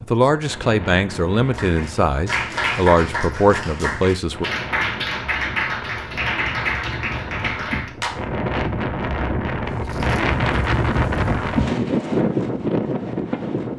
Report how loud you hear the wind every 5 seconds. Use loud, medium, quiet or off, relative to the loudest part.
quiet, medium, loud.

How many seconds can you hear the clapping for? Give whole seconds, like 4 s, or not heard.
7 s.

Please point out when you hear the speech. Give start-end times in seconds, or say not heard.
0.0-4.5.